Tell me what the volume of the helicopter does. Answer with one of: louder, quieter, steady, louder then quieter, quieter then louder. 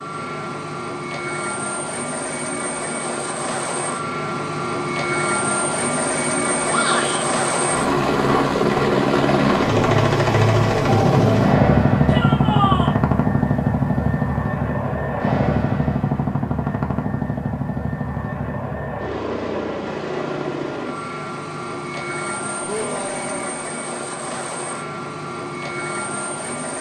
louder then quieter.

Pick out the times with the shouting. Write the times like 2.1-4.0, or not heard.
6.7-7.2, 12.1-12.9, 22.6-23.6.